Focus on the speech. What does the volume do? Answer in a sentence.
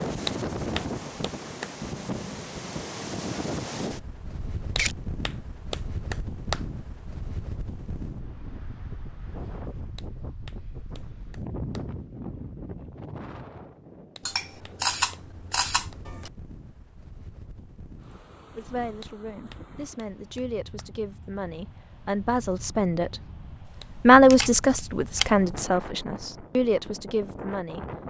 The volume of the speech goes up, then down.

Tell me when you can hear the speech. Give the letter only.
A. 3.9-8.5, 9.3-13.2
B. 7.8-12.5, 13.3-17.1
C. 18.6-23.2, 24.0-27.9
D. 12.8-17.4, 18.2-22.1
C.